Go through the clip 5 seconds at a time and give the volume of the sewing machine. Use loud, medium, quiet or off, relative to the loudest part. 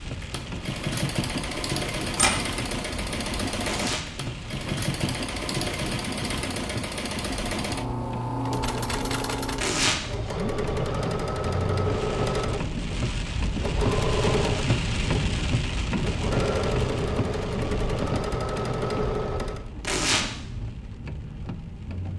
loud, loud, loud, loud, off.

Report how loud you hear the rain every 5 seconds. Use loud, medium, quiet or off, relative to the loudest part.
medium, medium, loud, loud, medium.